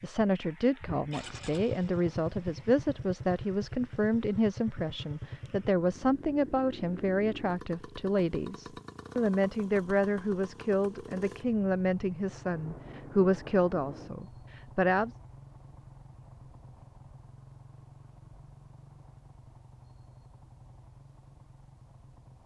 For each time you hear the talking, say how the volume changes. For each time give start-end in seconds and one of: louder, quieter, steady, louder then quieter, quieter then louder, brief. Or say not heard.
0.0-15.1 steady.